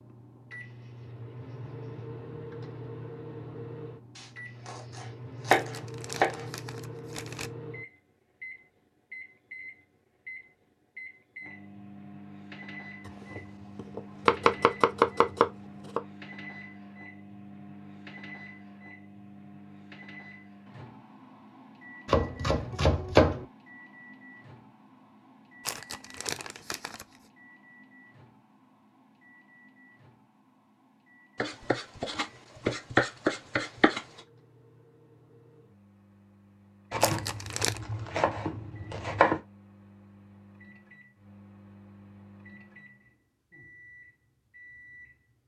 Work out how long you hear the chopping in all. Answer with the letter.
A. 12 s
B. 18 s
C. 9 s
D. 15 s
A.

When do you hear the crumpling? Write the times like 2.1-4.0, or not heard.
5.5-7.5, 25.6-27.2, 37.0-37.8.